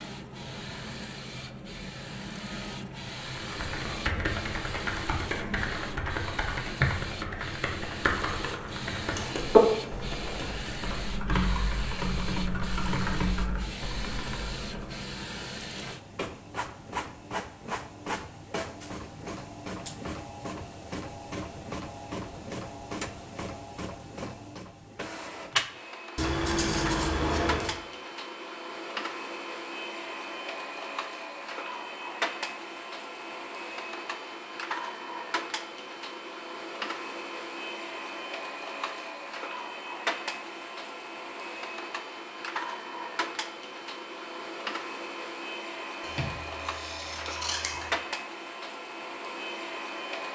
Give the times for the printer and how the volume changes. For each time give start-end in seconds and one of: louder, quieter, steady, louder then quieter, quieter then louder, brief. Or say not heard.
0.0-50.3 steady.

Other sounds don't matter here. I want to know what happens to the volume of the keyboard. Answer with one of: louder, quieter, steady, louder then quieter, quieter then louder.
louder then quieter.